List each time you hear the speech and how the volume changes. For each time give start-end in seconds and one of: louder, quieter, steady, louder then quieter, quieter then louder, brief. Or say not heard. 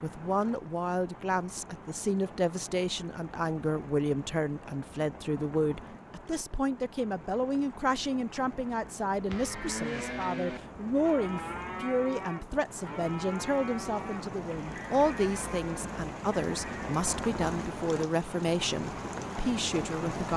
0.0-20.3 steady.